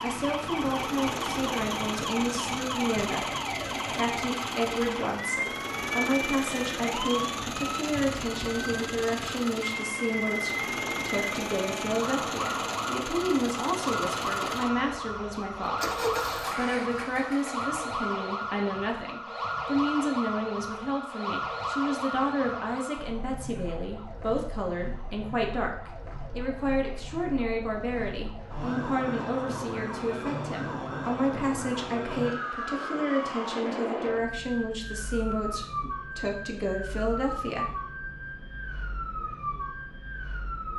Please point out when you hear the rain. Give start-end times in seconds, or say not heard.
not heard.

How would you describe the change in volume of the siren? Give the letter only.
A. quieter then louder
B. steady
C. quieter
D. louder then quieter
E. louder
B.